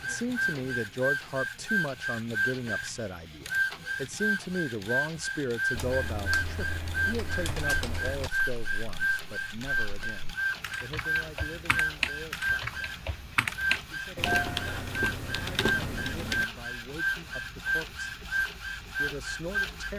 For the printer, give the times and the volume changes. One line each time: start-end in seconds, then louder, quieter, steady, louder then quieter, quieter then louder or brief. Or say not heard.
0.0-19.9 steady.